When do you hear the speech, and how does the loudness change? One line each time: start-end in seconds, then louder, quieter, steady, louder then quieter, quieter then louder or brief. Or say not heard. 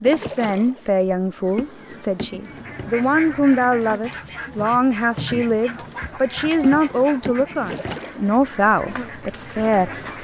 0.0-10.1 steady.